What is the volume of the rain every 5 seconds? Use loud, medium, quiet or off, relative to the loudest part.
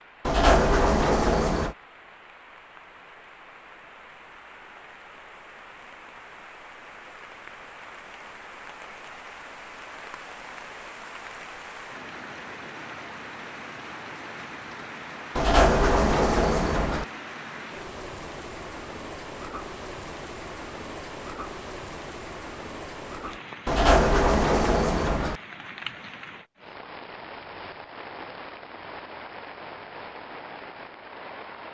medium, medium, loud, loud, loud, loud, loud.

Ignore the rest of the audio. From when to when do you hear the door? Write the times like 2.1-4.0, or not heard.
0.2-1.8, 15.3-17.1, 23.6-25.4.